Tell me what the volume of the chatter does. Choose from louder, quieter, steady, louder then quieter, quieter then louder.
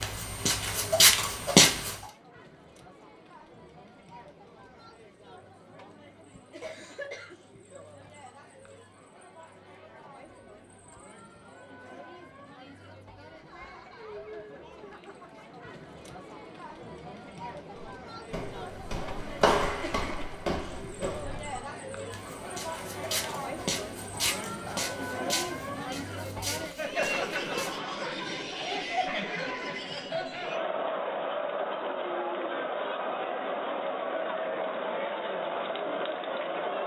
louder.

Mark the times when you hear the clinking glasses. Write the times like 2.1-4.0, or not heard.
not heard.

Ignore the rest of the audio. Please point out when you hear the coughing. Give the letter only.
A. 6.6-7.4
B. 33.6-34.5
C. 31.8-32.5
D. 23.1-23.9
A.